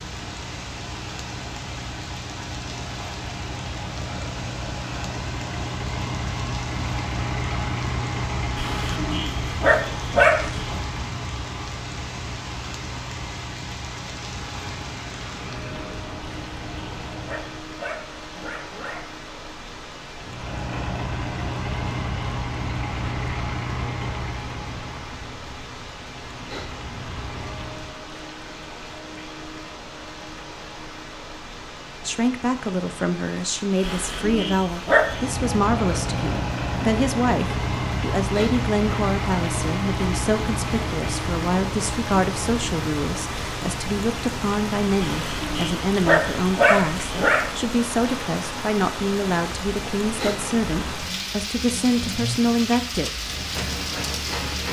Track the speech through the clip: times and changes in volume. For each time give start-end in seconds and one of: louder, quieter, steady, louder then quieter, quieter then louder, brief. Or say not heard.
32.0-53.1 steady.